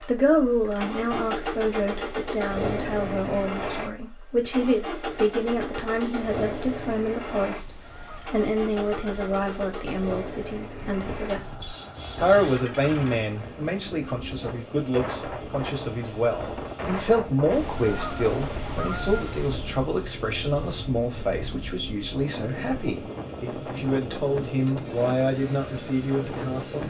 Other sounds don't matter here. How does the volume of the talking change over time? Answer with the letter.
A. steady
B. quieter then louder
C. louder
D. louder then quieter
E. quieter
A.